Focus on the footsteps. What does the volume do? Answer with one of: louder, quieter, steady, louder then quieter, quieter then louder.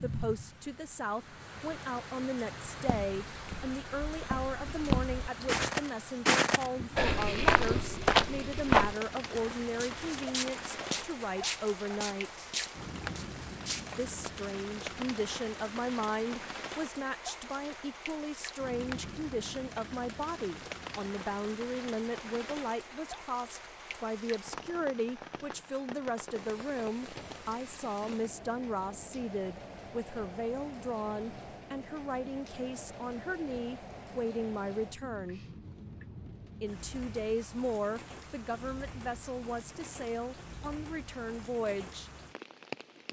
louder then quieter.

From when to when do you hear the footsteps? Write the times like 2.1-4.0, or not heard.
2.8-14.3.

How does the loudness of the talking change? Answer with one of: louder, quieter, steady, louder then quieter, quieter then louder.
steady.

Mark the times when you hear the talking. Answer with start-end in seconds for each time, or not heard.
0.0-12.5, 13.9-35.4, 36.6-42.1.